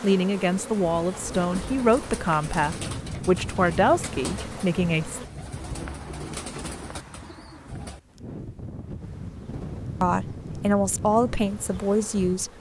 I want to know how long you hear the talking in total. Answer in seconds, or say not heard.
8 s.